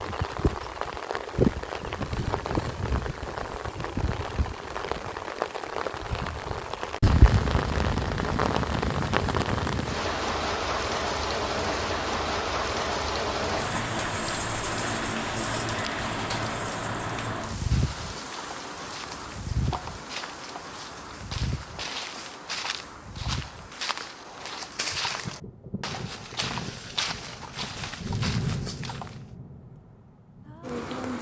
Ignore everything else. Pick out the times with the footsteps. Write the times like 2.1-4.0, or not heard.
17.6-29.2.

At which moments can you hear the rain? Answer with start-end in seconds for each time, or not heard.
0.0-31.1.